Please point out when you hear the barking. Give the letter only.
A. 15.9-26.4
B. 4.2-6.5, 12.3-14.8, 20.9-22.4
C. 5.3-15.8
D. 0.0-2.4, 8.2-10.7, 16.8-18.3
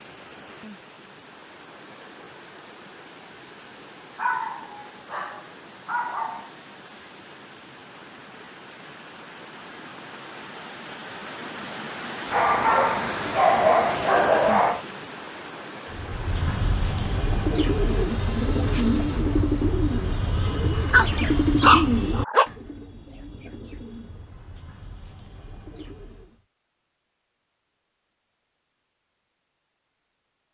B.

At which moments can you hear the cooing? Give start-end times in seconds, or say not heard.
15.9-26.4.